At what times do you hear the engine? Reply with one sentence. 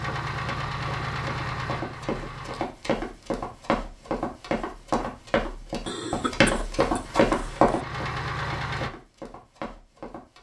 The engine can be heard from 0.0 to 2.6 s and from 7.0 to 8.9 s.